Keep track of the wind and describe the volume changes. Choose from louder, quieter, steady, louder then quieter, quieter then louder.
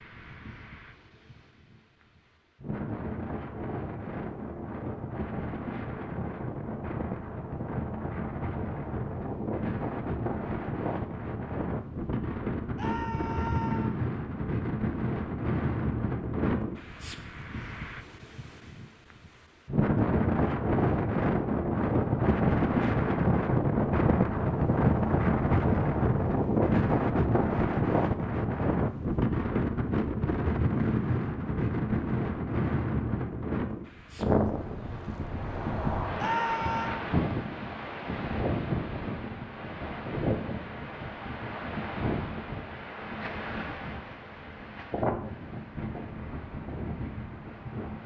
louder then quieter.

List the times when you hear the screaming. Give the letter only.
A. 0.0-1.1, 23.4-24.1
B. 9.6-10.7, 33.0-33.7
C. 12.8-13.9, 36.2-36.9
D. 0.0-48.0
C.